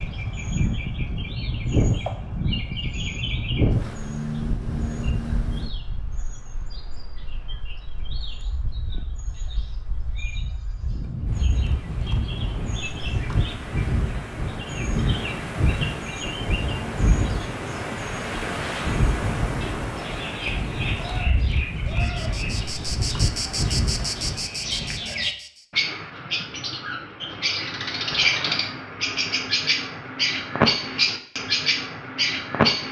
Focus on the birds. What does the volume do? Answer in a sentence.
The volume of the birds goes down, then up.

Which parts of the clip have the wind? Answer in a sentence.
You can hear the wind from 0.0 to 25.2 s.